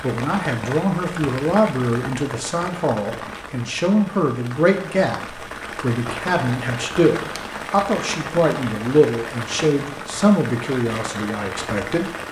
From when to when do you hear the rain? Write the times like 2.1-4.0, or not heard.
0.0-12.2.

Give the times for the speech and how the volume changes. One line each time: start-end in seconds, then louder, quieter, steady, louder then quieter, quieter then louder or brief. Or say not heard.
0.0-12.2 steady.